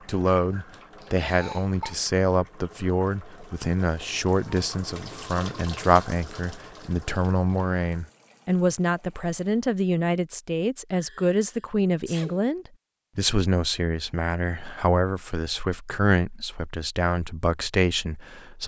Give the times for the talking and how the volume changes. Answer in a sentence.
You can hear the talking from 0.1 to 18.6 s, at a steady volume.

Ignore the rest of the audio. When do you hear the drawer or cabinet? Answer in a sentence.
The drawer or cabinet can't be heard in this clip.